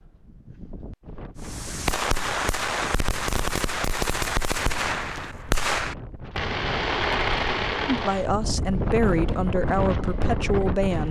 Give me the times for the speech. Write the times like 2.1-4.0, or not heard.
7.8-11.0.